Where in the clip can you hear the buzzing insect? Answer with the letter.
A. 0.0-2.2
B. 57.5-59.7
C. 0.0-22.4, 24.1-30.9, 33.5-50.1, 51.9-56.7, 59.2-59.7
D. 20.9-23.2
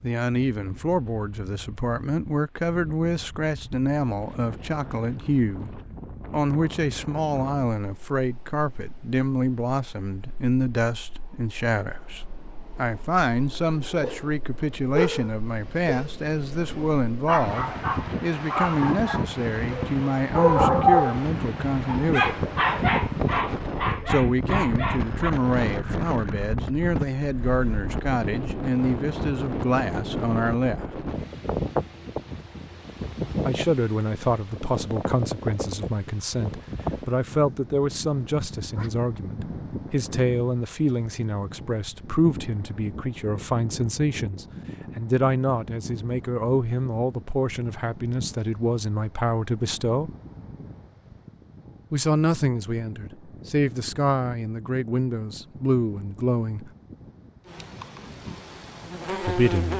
B.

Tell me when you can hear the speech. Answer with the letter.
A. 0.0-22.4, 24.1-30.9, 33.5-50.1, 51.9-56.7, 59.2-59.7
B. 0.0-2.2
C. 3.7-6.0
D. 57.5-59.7
A.